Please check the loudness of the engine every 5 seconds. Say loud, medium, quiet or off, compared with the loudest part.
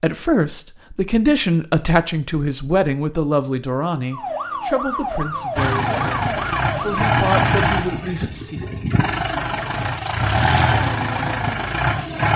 off, loud, loud.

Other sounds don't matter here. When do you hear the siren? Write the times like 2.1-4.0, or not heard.
4.1-7.0.